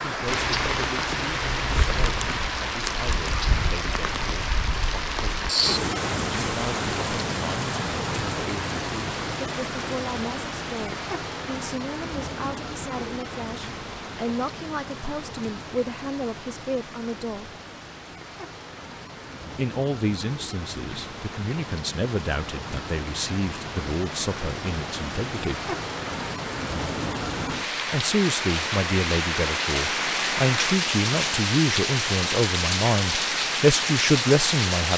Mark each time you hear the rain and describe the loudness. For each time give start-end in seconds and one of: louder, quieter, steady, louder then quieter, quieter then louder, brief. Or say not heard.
0.0-34.9 quieter then louder.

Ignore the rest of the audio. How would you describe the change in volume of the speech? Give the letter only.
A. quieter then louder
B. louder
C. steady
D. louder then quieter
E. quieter
B.